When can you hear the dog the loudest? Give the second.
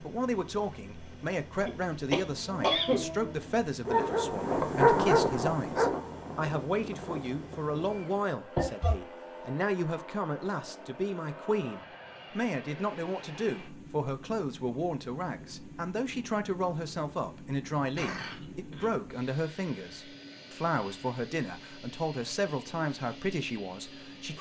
5 s.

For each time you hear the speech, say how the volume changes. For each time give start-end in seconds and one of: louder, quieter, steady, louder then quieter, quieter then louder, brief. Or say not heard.
0.0-24.3 steady.